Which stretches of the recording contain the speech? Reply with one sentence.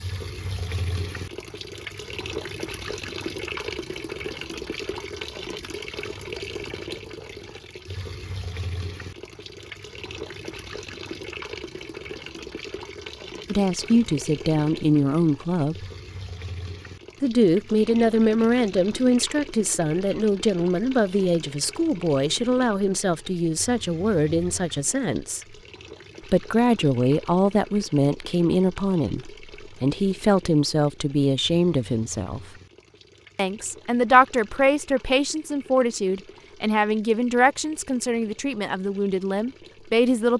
You can hear the speech from 13.4 to 15.8 s, from 17.2 to 25.6 s, from 26.3 to 32.4 s and from 33.4 to 40.3 s.